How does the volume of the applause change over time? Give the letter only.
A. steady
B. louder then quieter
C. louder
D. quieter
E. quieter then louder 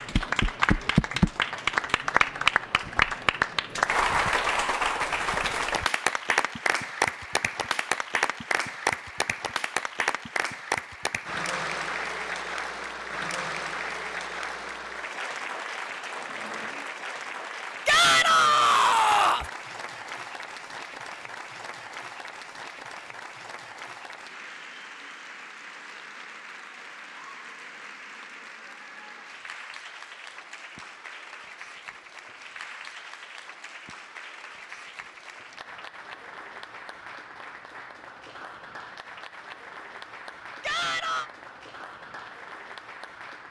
D.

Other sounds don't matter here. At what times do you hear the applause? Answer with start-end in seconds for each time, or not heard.
0.0-43.4.